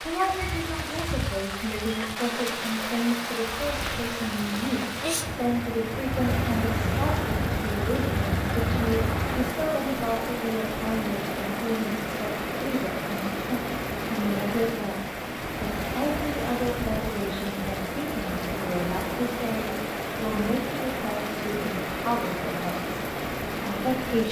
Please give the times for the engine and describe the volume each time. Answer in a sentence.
You can hear the engine from 3.5 to 9.6 s, getting louder.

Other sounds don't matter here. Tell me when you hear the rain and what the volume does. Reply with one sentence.
The rain can be heard from 0.0 to 24.2 s, at a steady volume.